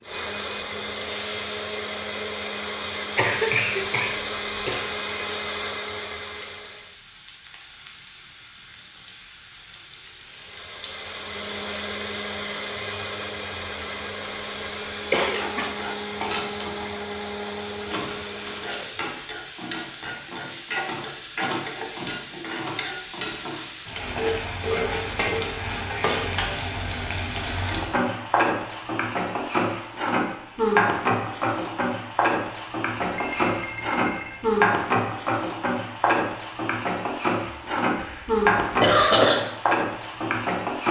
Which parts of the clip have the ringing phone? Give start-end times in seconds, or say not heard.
33.1-34.5.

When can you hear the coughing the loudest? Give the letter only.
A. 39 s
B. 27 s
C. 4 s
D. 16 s
A.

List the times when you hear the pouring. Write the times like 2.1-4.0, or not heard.
not heard.